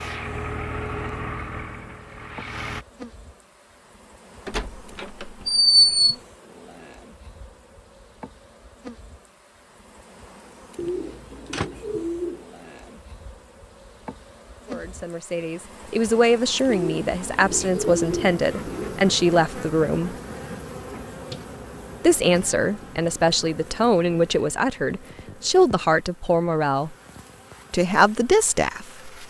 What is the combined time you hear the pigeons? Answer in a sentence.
You can hear the pigeons for 4 seconds altogether.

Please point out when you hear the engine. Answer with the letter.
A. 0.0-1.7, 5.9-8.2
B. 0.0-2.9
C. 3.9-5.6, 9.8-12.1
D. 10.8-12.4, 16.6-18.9
B.